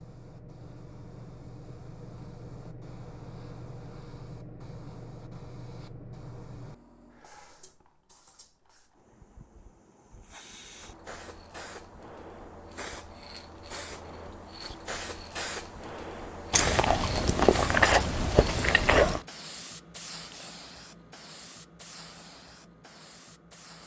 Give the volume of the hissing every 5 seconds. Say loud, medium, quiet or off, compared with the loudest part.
medium, medium, medium, loud, medium.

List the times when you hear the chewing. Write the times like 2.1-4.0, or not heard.
16.5-19.2.